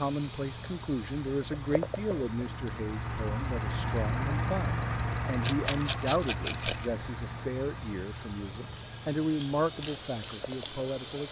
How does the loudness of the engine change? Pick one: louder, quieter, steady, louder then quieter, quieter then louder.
louder then quieter.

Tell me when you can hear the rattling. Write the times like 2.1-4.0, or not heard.
5.4-6.9.